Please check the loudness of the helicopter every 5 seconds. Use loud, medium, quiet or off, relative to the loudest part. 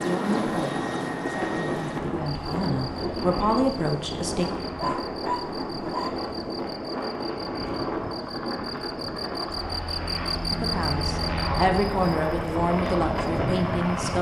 loud, medium, loud.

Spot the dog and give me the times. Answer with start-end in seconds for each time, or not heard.
4.8-6.3.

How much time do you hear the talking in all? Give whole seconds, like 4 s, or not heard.
8 s.